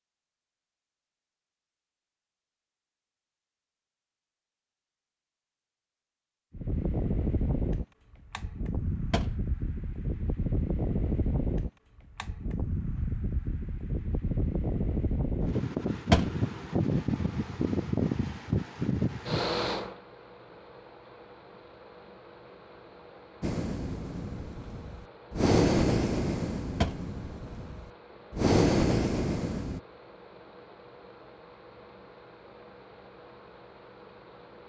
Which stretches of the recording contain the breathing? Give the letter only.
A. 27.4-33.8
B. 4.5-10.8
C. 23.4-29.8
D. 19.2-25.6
C.